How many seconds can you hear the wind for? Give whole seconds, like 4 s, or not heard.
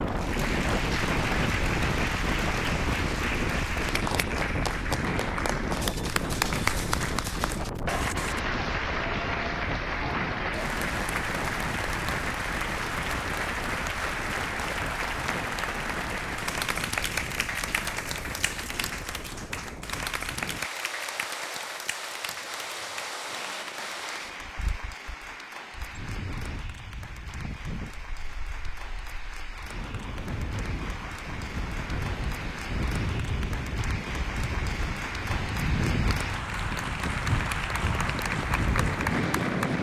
40 s.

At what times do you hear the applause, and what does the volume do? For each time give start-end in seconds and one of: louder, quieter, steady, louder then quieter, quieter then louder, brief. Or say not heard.
0.0-39.7 quieter then louder.